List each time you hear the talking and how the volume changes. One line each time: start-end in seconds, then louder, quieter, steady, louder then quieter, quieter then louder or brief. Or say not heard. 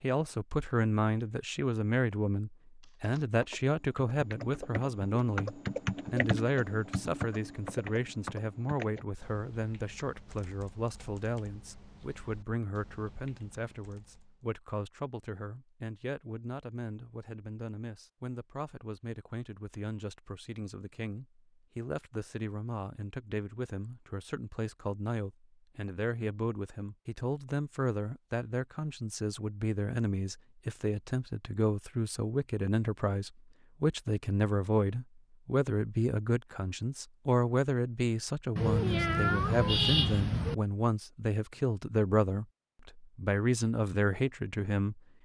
0.0-45.0 quieter then louder.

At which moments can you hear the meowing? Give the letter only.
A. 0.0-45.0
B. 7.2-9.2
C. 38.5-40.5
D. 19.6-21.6
C.